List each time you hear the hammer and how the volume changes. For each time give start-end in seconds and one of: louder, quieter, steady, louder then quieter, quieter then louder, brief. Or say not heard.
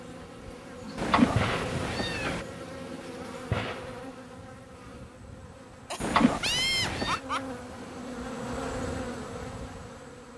not heard.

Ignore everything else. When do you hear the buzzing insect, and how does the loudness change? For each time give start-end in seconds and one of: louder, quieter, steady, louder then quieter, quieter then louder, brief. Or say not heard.
0.0-10.3 quieter then louder.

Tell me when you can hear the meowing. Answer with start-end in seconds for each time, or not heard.
0.9-2.5, 6.0-7.2.